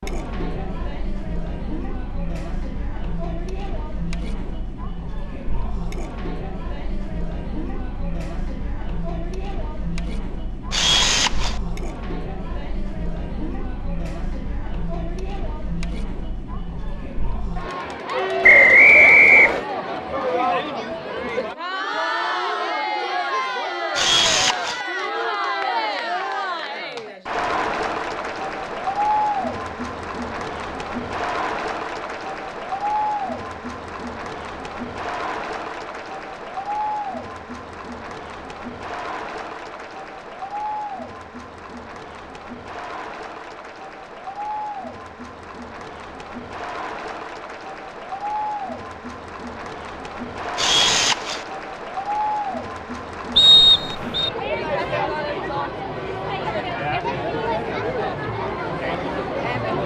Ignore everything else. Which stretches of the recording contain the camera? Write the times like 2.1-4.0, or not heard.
10.7-11.6, 23.9-24.9, 50.5-51.5.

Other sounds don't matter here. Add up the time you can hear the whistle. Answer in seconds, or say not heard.
2 s.